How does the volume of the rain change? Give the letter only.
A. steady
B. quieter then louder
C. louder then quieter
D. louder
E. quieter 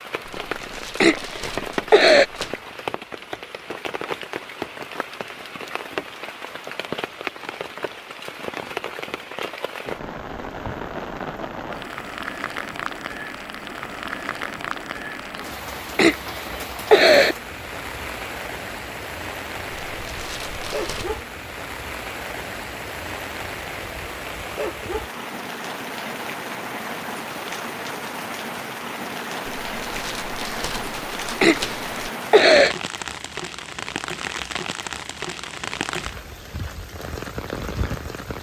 A.